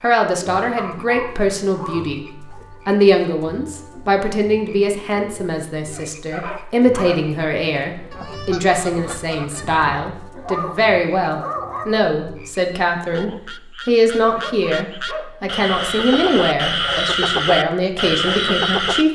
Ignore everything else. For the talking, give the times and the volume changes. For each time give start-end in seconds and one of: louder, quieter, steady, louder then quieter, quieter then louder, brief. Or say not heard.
0.0-19.0 steady.